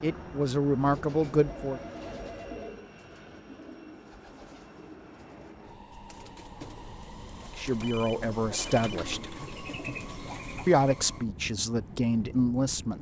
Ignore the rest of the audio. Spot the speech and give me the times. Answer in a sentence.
You can hear the speech from 0.0 to 1.8 s, from 7.5 to 9.3 s and from 10.7 to 12.9 s.